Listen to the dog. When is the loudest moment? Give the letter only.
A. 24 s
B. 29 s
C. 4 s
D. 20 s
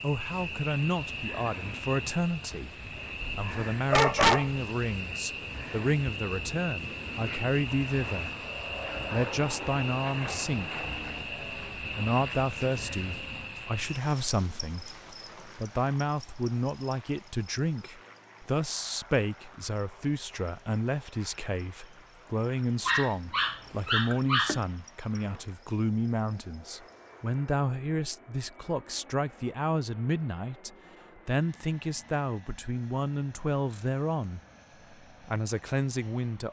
C.